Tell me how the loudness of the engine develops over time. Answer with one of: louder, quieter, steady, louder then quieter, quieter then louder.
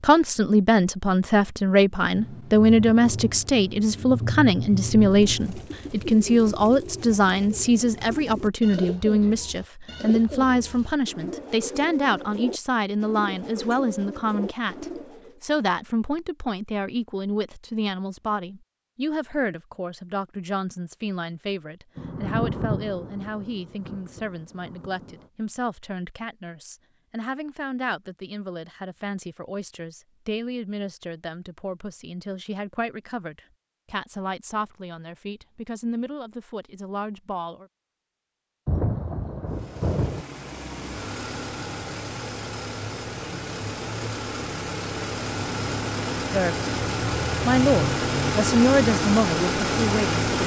louder.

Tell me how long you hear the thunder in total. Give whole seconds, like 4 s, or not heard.
8 s.